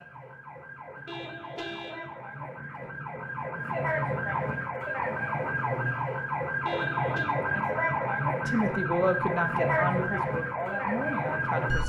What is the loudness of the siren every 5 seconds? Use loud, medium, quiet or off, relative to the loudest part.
medium, loud, loud.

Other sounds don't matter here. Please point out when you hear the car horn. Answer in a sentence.
You can hear the car horn from 1.1 to 2.1 s and from 6.7 to 7.3 s.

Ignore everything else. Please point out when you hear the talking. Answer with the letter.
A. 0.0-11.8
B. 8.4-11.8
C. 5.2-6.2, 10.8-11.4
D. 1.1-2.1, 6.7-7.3
B.